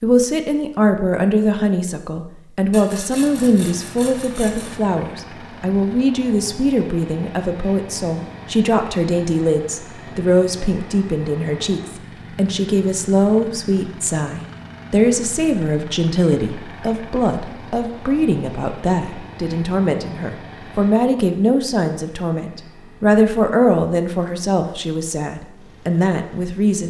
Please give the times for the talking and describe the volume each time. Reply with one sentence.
You can hear the talking from 0.0 to 26.8 s, at a steady volume.